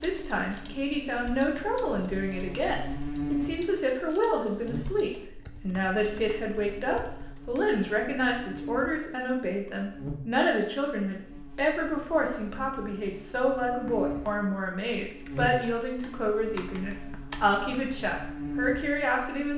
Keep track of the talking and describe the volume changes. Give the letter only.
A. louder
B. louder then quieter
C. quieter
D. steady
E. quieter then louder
D.